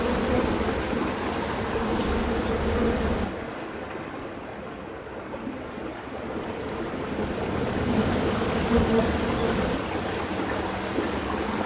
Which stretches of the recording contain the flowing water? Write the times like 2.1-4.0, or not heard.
0.0-11.6.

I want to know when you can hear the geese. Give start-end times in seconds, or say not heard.
not heard.